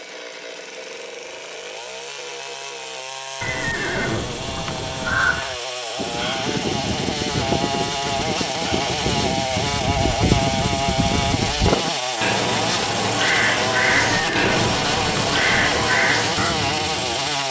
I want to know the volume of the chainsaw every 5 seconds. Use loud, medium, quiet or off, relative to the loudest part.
medium, loud, loud, loud.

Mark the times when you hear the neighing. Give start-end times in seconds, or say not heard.
3.4-5.4, 14.0-15.9.